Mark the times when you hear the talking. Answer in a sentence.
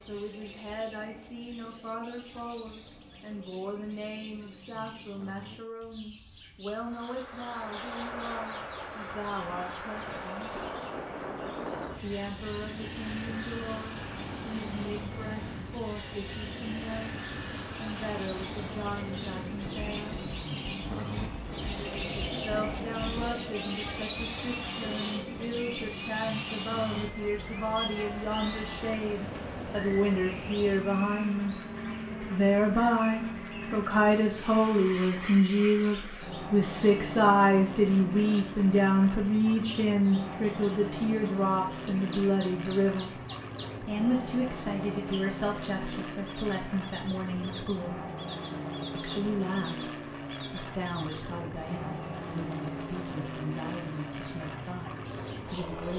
You can hear the talking from 0.0 to 10.6 s, from 12.0 to 20.2 s, from 22.3 to 31.6 s, from 32.3 to 43.2 s, from 43.8 to 48.0 s and from 49.0 to 55.9 s.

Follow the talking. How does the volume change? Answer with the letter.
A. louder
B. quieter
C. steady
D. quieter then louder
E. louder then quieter
E.